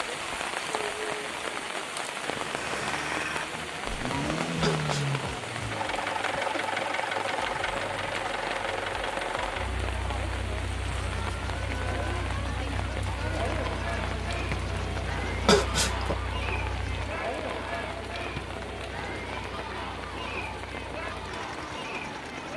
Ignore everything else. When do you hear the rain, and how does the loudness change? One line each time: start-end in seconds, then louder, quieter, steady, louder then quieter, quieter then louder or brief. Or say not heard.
0.0-22.5 quieter.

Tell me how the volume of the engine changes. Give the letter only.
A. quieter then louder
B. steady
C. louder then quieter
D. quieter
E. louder
D.